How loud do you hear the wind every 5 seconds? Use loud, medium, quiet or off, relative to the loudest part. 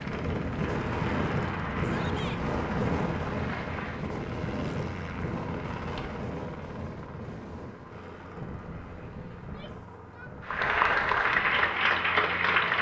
loud, medium, quiet.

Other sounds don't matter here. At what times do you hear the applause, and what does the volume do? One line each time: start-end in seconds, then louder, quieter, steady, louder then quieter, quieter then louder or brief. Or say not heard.
0.0-4.2 steady
10.4-12.7 brief.